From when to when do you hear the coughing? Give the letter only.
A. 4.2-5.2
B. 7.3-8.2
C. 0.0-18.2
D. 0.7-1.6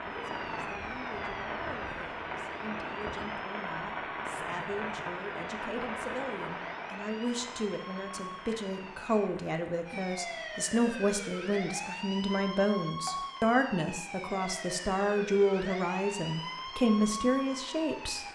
A.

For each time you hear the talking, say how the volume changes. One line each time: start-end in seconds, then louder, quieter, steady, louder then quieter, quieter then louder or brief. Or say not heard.
0.0-18.2 louder.